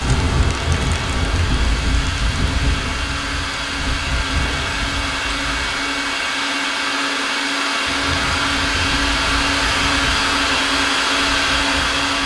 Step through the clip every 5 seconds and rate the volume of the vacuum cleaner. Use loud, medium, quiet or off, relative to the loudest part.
medium, loud, loud.